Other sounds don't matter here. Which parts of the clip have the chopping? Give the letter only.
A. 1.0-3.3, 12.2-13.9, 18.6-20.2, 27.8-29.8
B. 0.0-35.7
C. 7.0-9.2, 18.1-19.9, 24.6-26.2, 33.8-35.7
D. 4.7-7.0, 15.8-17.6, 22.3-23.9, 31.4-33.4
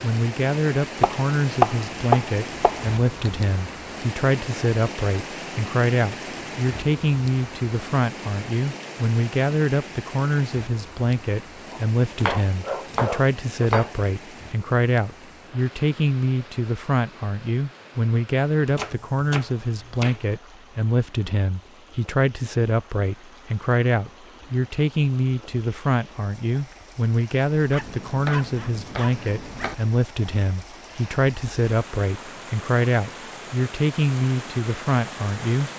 A.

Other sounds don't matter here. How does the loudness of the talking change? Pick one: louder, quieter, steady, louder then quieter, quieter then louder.
steady.